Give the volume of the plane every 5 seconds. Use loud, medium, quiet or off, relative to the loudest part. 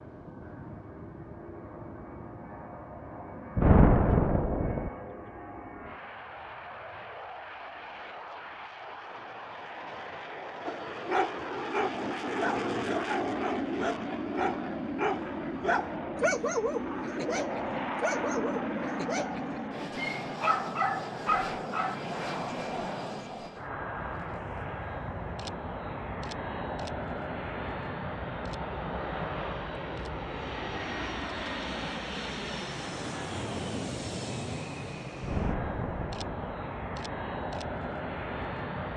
medium, medium, loud, loud, loud, loud, loud, loud.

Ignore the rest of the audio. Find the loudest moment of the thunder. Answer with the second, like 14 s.
4 s.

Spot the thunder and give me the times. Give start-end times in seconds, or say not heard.
3.5-4.9, 35.2-36.5.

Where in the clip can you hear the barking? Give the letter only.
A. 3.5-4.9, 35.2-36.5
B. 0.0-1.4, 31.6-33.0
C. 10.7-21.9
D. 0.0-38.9
C.